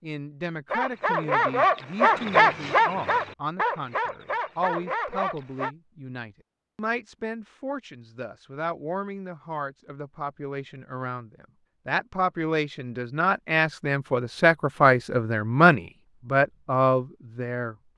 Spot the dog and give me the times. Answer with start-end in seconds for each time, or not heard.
0.7-5.7.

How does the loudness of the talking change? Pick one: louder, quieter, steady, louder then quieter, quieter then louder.
louder.